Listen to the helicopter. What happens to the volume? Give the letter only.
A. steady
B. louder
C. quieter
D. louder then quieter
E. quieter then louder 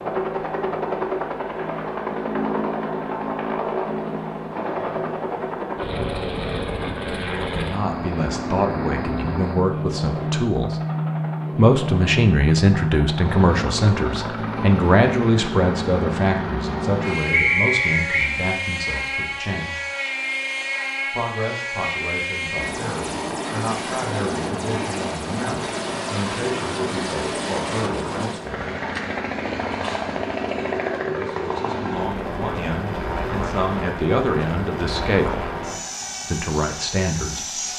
A.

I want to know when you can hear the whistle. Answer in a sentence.
You can hear the whistle from 17.3 to 18.4 s.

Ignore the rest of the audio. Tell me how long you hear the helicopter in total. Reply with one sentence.
You can hear the helicopter for 38 seconds altogether.